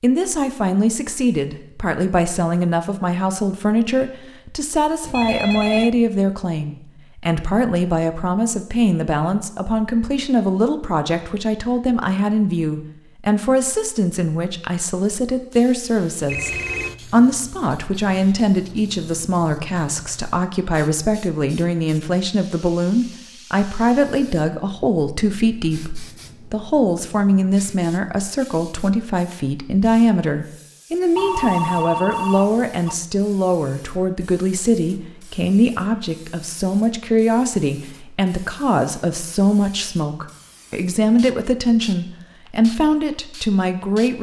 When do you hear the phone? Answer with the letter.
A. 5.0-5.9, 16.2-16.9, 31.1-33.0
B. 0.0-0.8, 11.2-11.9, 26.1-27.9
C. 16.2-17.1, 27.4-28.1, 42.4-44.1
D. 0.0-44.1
A.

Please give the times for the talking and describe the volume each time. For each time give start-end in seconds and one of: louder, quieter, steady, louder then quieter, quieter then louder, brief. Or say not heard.
0.0-44.1 steady.